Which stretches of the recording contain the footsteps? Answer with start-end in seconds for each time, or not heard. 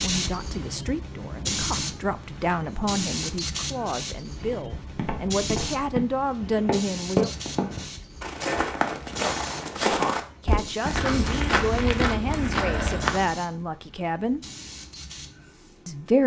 4.4-13.3.